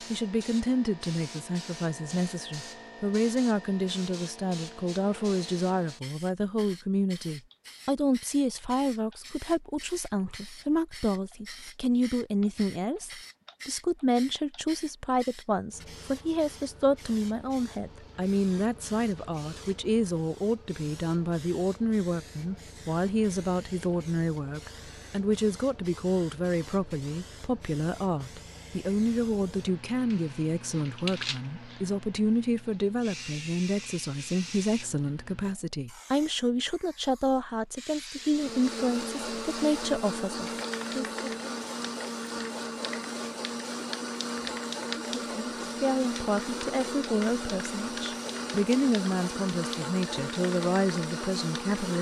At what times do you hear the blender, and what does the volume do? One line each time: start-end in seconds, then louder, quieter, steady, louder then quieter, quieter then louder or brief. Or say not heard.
38.2-51.9 steady.